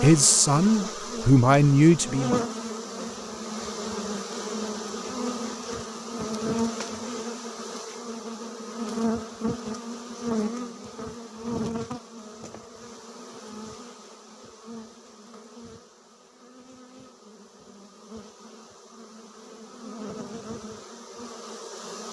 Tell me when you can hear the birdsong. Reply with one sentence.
You can't hear the birdsong here.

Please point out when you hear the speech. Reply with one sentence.
The speech can be heard from 0.0 to 2.4 s.